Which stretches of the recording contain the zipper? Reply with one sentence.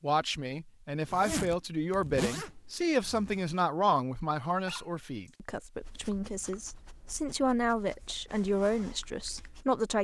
The zipper can be heard from 1.1 to 3.5 s.